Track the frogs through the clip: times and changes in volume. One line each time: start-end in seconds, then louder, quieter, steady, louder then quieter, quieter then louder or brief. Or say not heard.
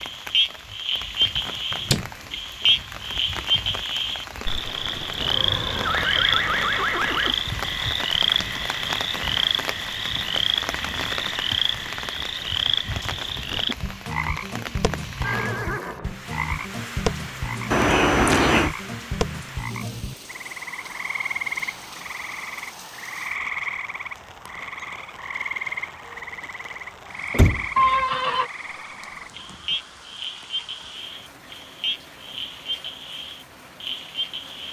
0.0-34.6 quieter.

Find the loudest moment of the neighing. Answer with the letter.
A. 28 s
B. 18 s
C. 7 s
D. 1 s
A.